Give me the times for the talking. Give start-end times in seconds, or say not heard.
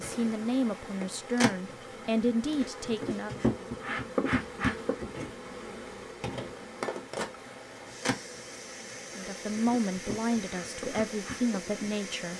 0.0-3.5, 9.2-12.3.